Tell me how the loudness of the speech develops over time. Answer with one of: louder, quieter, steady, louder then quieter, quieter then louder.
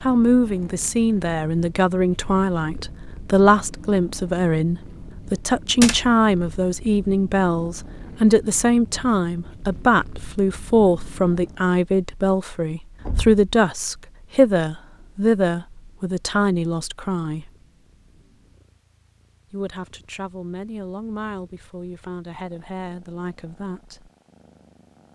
quieter.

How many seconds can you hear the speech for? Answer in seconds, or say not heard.
22 s.